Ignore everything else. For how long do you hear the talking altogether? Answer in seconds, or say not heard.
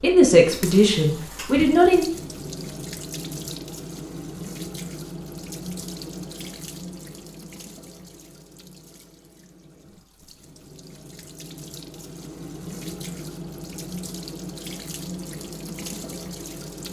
2 s.